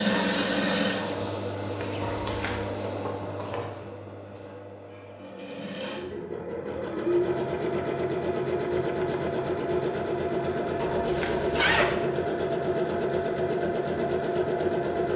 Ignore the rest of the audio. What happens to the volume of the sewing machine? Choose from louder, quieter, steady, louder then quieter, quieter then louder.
quieter then louder.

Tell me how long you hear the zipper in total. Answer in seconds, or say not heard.
2 s.